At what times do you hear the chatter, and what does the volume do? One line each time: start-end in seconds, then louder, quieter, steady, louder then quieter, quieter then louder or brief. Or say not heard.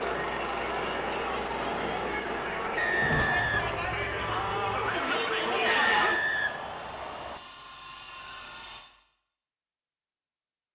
0.0-6.2 louder.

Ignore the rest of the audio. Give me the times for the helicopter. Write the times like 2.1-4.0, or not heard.
0.0-8.8.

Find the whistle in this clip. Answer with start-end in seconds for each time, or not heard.
2.8-3.9, 5.7-7.4.